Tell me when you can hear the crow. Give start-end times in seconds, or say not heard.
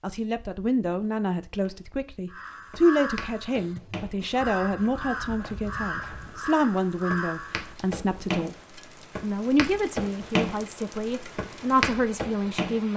2.3-7.8.